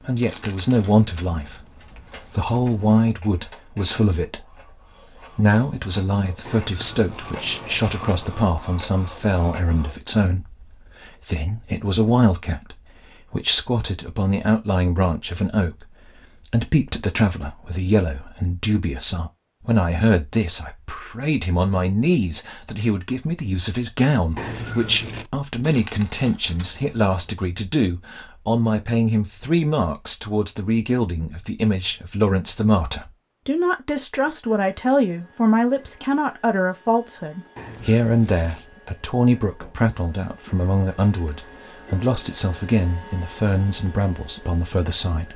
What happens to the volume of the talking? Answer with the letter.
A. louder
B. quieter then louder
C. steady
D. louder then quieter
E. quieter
C.